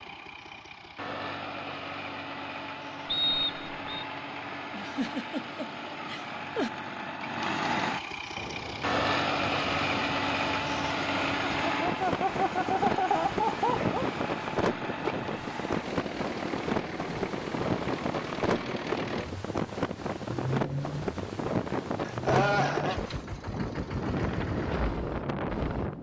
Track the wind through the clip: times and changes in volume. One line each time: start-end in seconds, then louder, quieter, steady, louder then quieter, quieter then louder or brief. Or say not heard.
8.3-25.9 louder.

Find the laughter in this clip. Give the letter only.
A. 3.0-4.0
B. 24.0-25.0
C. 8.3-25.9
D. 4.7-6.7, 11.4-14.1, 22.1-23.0
D.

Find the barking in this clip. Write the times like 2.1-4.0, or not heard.
not heard.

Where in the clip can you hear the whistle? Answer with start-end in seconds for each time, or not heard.
3.0-4.0.